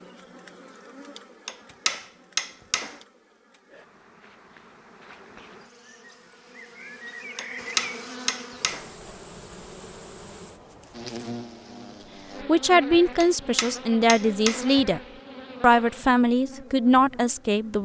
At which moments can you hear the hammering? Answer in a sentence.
The hammering can be heard from 1.4 to 3.0 s, from 7.3 to 8.9 s and from 13.2 to 14.7 s.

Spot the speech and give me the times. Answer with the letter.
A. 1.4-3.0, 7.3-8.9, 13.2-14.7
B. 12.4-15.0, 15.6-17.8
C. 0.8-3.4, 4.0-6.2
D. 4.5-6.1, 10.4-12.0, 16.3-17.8
B.